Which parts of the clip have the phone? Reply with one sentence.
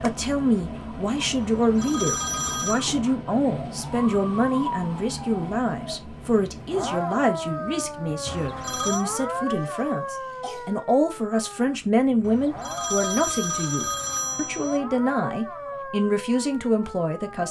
The phone can be heard from 1.4 to 2.8 s, from 8.2 to 9.1 s and from 12.2 to 14.8 s.